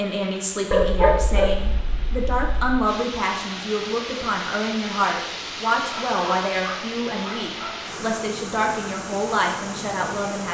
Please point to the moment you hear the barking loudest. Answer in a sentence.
The volume of the barking peaks at 1 second.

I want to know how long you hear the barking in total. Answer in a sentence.
The barking can be heard for 4 seconds in total.